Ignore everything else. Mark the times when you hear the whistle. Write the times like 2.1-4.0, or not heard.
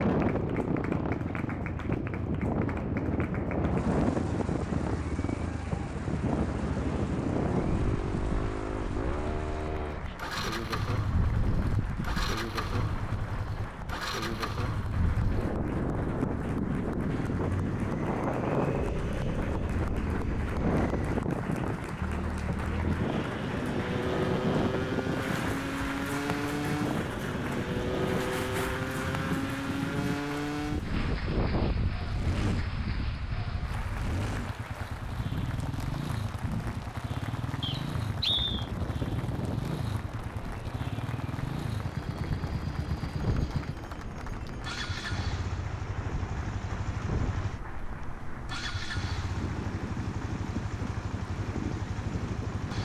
37.6-38.7.